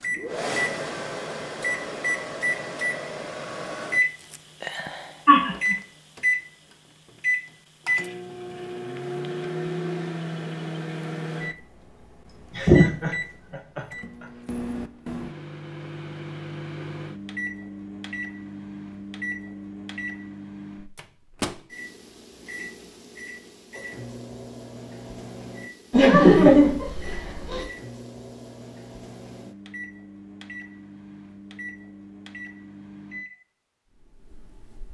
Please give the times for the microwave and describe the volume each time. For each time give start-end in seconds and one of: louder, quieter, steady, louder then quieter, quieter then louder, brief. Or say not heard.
0.0-34.8 quieter.